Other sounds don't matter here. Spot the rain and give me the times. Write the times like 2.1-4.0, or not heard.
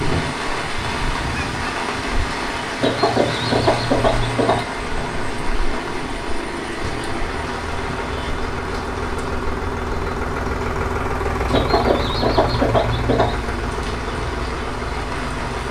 0.0-15.6.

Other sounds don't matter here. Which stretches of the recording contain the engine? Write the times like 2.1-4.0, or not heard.
0.0-15.6.